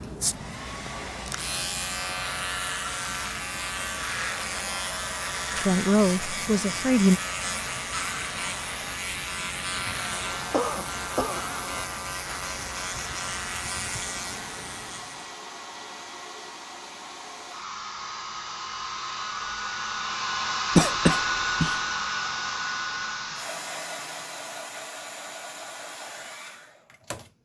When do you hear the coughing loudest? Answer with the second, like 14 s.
21 s.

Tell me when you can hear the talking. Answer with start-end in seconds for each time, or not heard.
5.5-7.2.